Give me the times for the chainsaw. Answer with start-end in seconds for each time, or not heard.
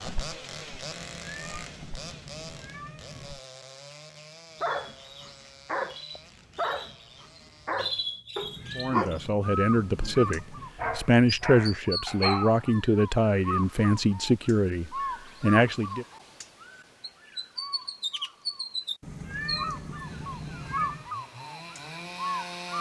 0.0-8.2, 20.0-22.7.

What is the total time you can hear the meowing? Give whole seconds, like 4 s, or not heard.
7 s.